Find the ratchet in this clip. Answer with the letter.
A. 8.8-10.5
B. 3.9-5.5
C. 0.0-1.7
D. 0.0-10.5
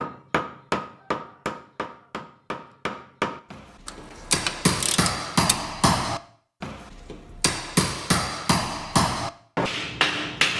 B.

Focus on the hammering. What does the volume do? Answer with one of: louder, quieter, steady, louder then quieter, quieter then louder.
louder.